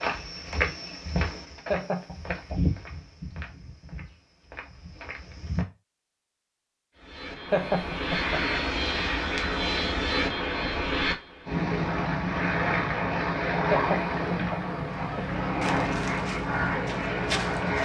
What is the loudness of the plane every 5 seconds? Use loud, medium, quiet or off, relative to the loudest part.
off, loud, loud, loud.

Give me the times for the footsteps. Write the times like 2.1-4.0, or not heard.
0.0-5.7, 15.6-17.7.